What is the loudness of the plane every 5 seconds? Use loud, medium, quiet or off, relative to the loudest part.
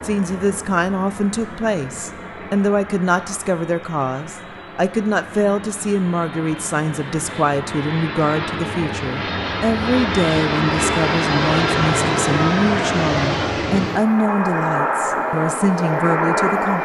quiet, medium, loud, loud.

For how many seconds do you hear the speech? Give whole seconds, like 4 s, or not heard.
17 s.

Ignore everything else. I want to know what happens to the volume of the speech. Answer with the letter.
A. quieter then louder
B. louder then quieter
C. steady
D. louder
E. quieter
C.